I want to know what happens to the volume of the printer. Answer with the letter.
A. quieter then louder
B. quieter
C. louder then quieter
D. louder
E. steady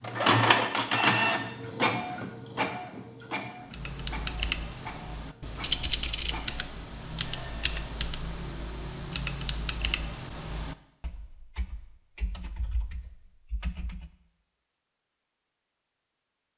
B.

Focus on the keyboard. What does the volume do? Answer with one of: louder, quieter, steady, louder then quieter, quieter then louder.
quieter.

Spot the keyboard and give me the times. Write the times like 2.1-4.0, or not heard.
3.6-14.1.